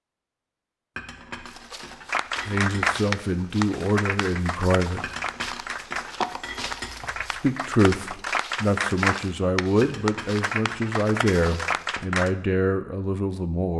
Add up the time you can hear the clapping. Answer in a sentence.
The clapping can be heard for 10 seconds in total.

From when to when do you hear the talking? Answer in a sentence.
The talking can be heard from 2.5 to 5.1 s and from 7.3 to 13.7 s.